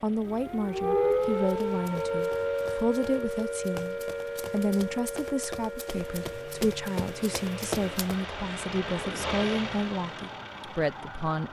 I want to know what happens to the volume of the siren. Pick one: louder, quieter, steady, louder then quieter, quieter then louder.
quieter.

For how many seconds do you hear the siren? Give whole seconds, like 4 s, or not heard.
11 s.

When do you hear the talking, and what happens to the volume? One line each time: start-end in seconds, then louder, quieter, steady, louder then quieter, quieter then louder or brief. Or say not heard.
0.0-11.4 steady.